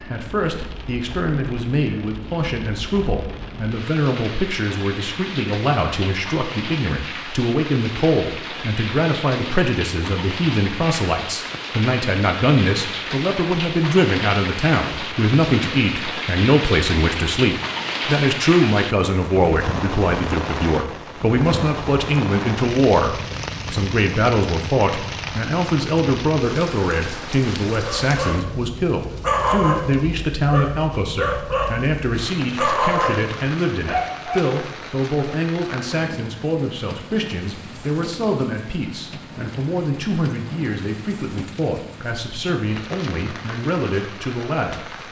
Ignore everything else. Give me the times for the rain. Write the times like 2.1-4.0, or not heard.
0.0-45.0.